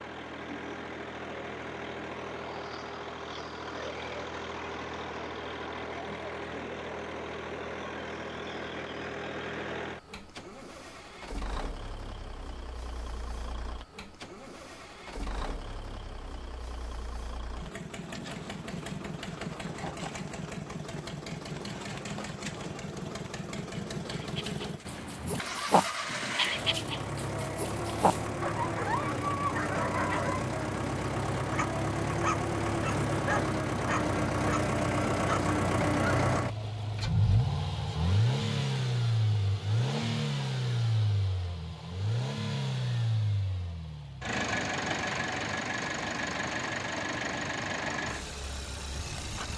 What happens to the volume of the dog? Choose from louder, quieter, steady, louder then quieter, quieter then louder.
steady.